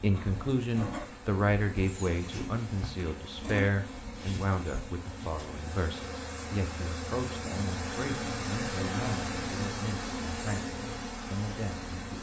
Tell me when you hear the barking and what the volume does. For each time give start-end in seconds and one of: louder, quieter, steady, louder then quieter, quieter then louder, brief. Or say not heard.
not heard.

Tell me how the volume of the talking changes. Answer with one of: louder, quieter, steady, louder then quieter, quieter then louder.
quieter.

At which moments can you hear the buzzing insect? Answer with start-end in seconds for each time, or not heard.
0.0-12.1.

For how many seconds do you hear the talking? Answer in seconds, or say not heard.
12 s.